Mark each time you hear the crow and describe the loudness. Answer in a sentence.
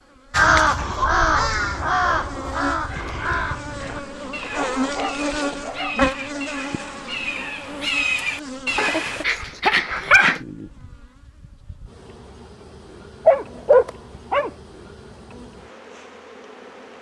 The crow can be heard from 0.3 to 9.2 s, getting quieter then louder.